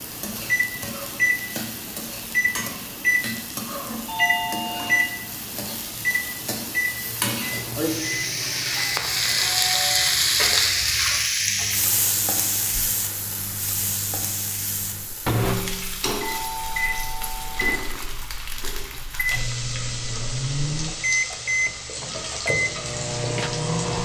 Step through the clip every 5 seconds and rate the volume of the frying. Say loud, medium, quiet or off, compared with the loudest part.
medium, loud, loud, medium, medium.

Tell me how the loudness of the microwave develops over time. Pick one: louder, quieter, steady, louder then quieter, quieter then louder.
quieter then louder.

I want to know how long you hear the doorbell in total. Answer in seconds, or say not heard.
3 s.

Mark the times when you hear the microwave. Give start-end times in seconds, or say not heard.
0.0-24.0.